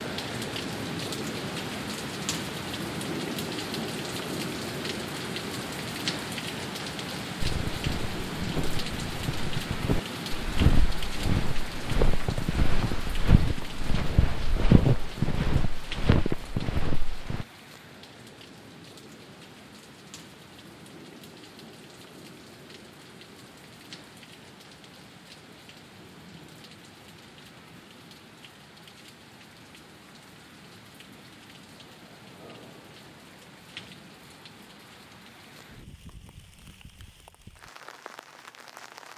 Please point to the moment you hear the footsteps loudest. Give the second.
15 s.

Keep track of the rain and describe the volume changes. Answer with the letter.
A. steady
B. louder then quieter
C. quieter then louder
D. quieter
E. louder
D.